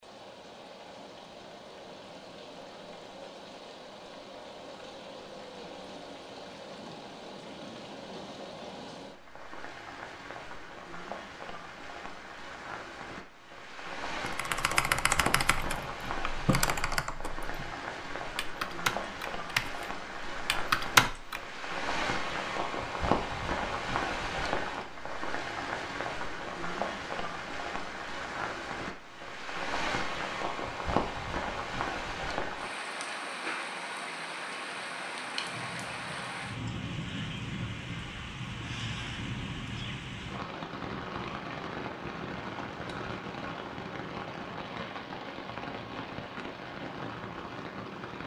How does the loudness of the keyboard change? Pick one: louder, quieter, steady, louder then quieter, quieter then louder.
quieter then louder.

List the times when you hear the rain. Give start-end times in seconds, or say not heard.
0.0-48.2.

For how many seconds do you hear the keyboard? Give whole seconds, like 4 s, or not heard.
7 s.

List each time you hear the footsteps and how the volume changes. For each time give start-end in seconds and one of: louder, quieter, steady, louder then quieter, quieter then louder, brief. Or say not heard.
not heard.